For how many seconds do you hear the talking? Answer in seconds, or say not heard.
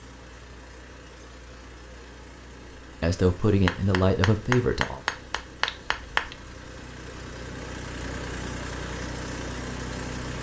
2 s.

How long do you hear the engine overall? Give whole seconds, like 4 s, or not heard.
10 s.